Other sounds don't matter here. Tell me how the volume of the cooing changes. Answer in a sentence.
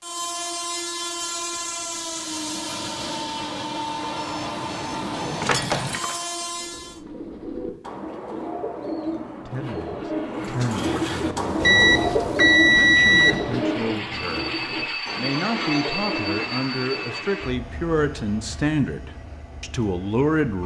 The volume of the cooing goes up, then down.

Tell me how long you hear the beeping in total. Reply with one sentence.
You can hear the beeping for 4 seconds altogether.